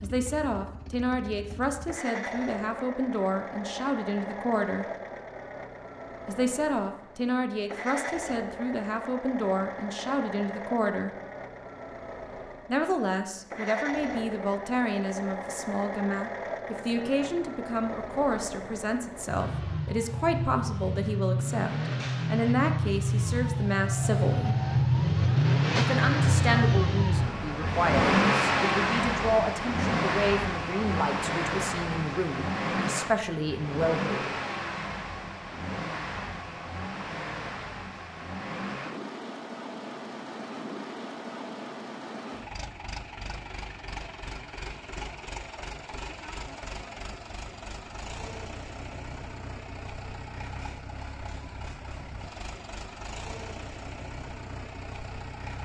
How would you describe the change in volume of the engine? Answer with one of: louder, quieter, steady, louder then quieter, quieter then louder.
louder then quieter.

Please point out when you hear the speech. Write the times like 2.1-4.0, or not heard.
0.0-4.8, 6.2-11.1, 12.7-24.6, 25.8-34.4.